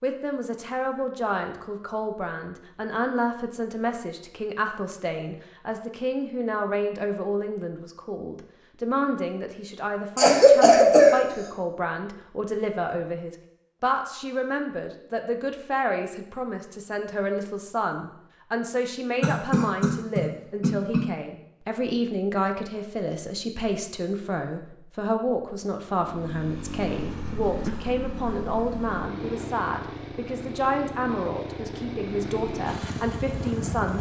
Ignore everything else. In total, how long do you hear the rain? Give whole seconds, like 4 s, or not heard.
not heard.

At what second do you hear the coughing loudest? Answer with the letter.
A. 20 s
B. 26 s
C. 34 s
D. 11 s
D.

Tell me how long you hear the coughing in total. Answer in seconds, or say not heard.
3 s.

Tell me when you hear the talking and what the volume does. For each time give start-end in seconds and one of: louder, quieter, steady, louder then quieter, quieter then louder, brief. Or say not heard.
0.0-33.9 steady.